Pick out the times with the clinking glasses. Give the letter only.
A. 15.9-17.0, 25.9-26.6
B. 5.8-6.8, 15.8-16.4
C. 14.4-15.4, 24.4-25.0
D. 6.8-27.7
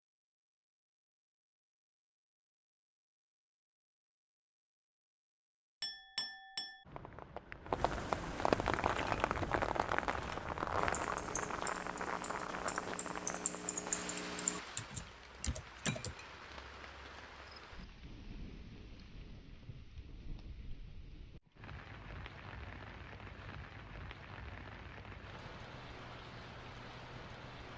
B.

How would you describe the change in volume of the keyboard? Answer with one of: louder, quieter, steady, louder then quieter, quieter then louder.
louder.